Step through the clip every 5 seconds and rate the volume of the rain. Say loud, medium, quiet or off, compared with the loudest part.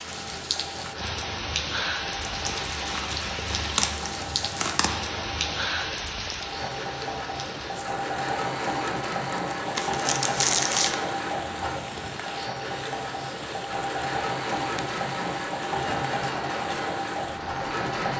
loud, loud, medium, medium.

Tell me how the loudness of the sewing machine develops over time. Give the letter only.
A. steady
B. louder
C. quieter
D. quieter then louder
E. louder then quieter
B.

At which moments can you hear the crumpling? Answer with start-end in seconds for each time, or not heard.
2.2-4.9, 9.8-10.9.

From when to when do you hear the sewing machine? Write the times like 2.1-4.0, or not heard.
0.0-18.1.